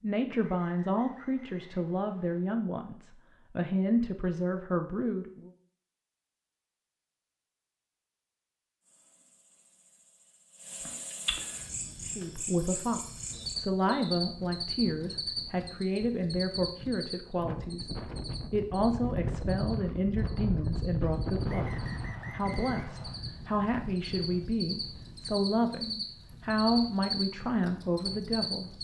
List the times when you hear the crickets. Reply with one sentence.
The crickets can be heard from 8.8 to 28.7 s.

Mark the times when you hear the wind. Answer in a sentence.
The wind can be heard from 11.4 to 28.7 s.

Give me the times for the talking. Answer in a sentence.
The talking can be heard from 0.0 to 5.5 s and from 12.1 to 28.7 s.